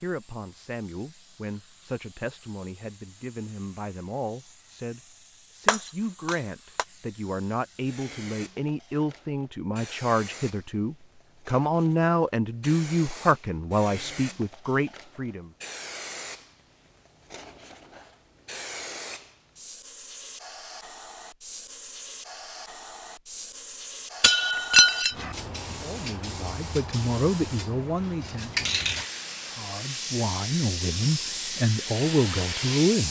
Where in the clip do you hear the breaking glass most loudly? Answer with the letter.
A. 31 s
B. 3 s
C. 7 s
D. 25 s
D.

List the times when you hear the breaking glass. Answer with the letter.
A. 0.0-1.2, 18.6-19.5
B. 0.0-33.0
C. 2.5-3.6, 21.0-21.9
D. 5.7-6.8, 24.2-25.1
D.